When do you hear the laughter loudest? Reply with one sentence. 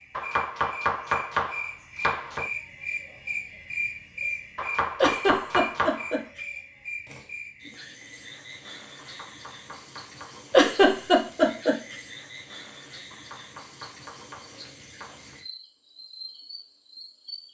The volume of the laughter peaks at 11 seconds.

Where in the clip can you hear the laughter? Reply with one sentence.
You can hear the laughter from 5.0 to 6.4 s and from 10.5 to 11.9 s.